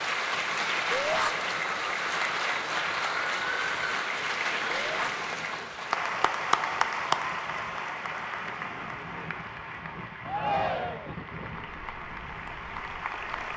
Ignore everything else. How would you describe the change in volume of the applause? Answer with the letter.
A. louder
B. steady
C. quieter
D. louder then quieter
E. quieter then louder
C.